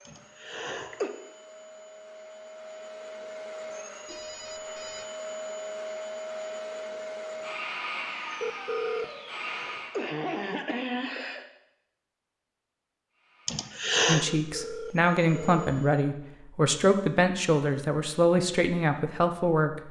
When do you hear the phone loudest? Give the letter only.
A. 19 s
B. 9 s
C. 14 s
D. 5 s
B.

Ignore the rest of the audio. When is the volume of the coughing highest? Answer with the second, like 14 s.
14 s.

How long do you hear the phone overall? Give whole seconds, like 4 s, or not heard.
3 s.